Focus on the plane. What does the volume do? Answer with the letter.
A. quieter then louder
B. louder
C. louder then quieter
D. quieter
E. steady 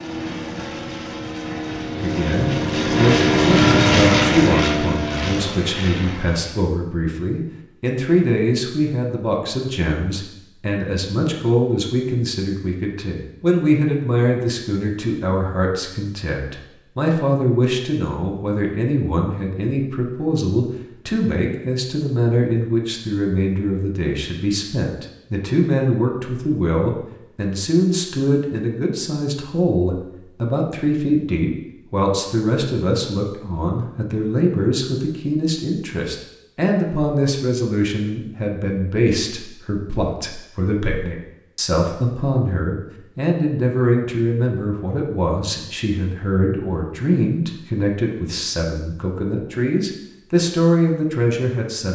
C.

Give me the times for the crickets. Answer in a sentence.
The crickets can't be heard in this clip.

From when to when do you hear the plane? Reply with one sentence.
The plane can be heard from 0.0 to 6.7 s.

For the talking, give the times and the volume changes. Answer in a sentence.
You can hear the talking from 2.0 to 51.9 s, at a steady volume.